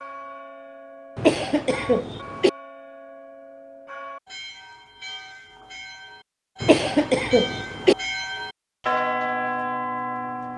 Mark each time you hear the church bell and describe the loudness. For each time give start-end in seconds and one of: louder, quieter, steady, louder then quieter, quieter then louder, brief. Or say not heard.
0.0-10.5 louder.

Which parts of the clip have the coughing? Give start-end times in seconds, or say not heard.
1.1-2.5, 6.6-8.0.